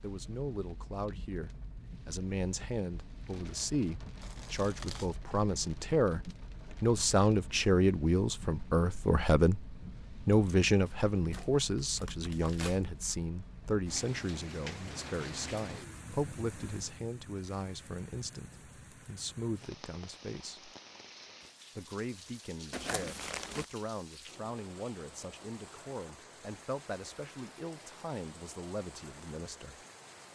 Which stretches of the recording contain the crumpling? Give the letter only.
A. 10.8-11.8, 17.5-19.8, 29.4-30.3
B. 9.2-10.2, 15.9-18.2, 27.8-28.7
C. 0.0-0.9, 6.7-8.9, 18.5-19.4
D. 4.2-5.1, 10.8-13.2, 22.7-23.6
D.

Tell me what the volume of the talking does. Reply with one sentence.
The volume of the talking goes up, then down.